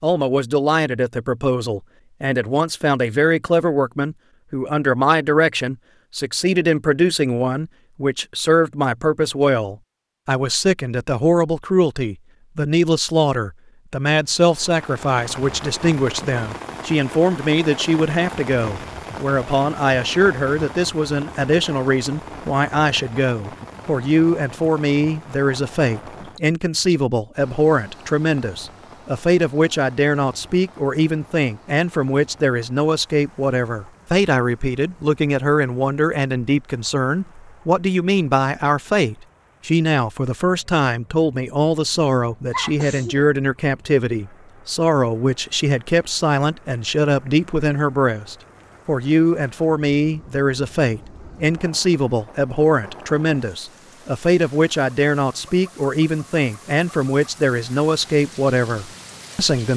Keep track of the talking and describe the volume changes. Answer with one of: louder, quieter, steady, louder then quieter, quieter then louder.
steady.